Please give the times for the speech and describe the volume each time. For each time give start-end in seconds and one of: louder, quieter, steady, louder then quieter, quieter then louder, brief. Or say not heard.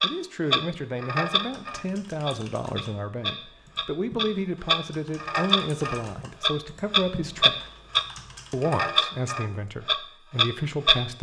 0.0-7.6 steady
8.5-11.1 brief.